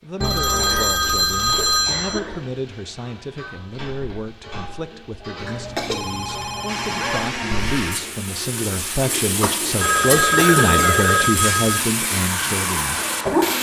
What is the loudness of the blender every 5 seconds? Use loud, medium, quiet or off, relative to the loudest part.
off, loud, loud.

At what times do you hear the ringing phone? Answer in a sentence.
You can hear the ringing phone from 0.2 to 2.2 s, from 5.4 to 7.3 s and from 9.8 to 11.8 s.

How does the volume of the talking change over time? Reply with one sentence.
The loudness of the talking goes up.